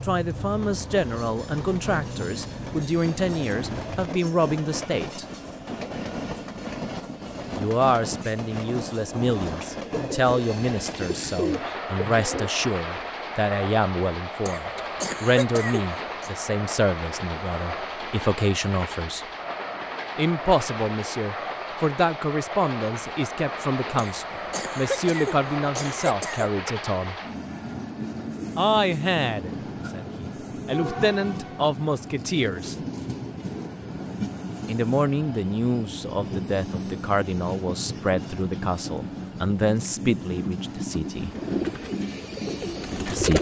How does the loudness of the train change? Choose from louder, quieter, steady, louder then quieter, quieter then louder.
steady.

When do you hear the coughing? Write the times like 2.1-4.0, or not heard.
14.4-16.3, 23.9-26.5.